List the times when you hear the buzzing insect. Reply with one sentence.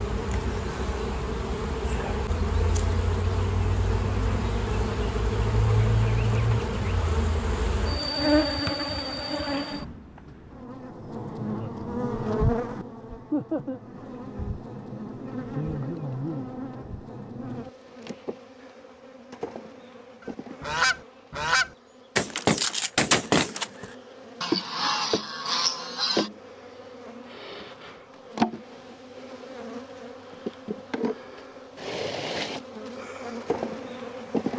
You can hear the buzzing insect from 0.0 to 34.5 s.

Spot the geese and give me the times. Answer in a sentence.
You can hear the geese from 20.2 to 26.3 s.